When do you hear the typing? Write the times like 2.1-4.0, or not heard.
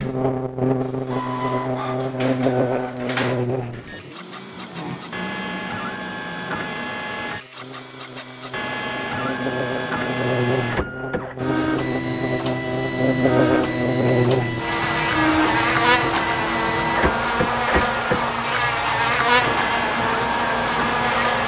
not heard.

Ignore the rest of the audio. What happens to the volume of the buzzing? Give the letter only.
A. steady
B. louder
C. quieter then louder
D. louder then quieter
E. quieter
C.